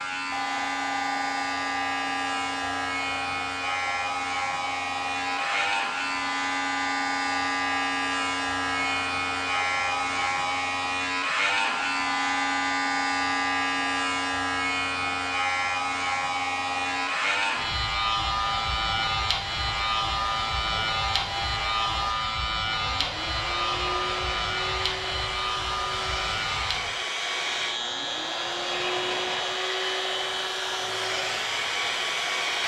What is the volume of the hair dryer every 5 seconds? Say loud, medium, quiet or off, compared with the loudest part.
medium, medium, medium, medium, medium, loud, loud.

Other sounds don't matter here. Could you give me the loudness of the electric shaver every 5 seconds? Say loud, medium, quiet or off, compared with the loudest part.
loud, loud, loud, loud, loud, medium, medium.